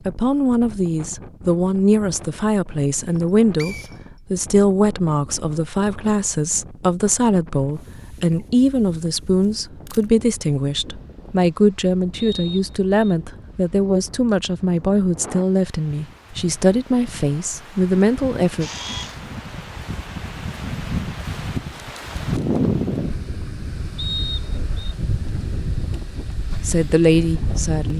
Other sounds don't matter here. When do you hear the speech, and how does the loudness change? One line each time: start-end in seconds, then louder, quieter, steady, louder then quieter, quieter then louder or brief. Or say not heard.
0.1-18.7 steady
26.6-27.9 brief.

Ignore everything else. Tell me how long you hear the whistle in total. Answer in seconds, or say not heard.
2 s.